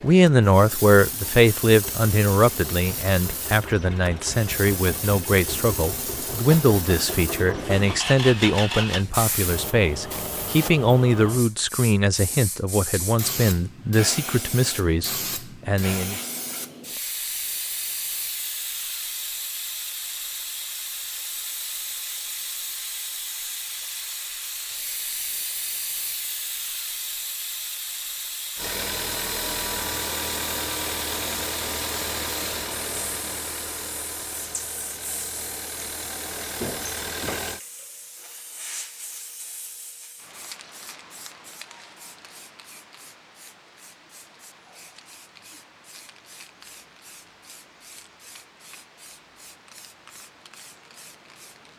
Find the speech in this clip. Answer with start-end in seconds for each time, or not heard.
0.0-16.2.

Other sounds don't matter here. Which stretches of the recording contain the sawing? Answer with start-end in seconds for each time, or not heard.
not heard.